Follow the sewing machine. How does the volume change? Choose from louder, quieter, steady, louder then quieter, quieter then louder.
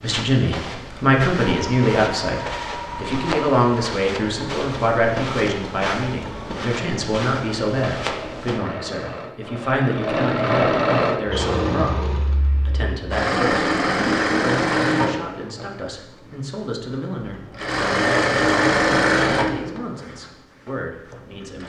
louder.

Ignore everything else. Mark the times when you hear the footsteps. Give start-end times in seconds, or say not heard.
0.0-8.6.